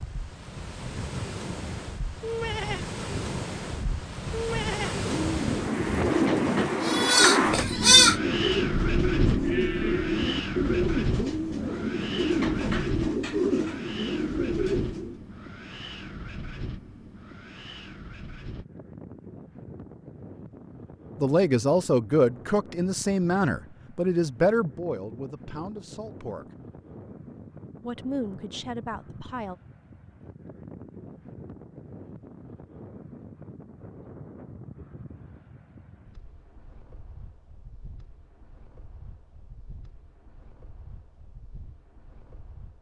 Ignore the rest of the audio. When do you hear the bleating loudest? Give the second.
8 s.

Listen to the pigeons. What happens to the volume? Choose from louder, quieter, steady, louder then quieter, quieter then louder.
steady.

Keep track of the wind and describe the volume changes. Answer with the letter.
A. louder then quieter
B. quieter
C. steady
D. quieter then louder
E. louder
B.